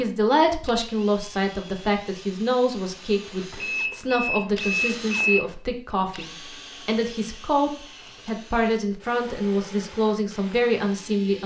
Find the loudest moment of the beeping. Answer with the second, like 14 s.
5 s.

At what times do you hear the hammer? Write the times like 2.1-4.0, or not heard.
not heard.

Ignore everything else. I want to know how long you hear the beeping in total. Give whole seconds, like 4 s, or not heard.
2 s.